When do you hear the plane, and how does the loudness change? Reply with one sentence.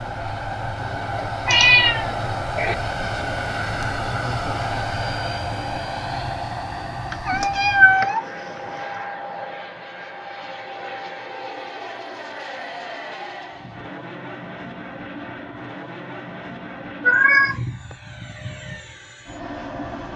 You can hear the plane from 0.0 to 20.1 s, getting quieter.